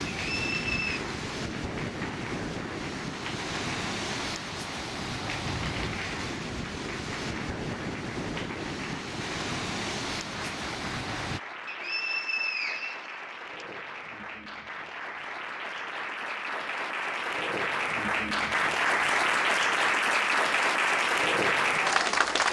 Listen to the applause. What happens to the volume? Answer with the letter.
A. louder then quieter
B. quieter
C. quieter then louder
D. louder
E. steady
D.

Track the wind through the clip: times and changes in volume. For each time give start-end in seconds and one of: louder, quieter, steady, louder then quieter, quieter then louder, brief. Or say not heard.
0.0-11.4 steady.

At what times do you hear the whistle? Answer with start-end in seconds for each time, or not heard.
0.3-1.0, 11.7-13.7.